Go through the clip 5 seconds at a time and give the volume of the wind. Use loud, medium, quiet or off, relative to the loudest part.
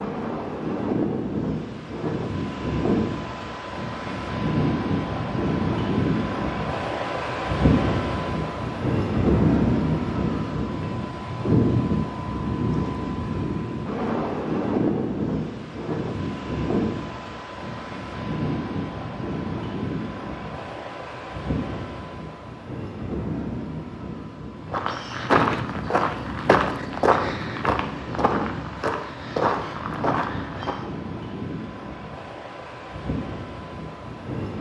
loud, loud, loud, medium, medium, medium, medium.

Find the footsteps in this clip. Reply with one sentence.
The footsteps can be heard from 24.6 to 30.9 s.